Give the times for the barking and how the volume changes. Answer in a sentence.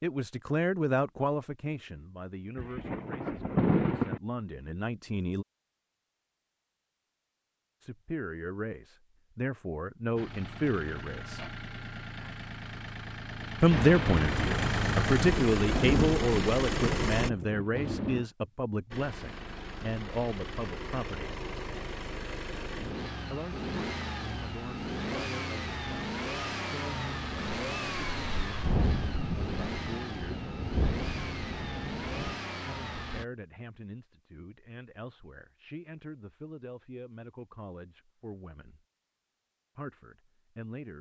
You can't hear the barking here.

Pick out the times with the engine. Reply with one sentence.
You can hear the engine from 10.2 to 17.3 s and from 18.9 to 33.2 s.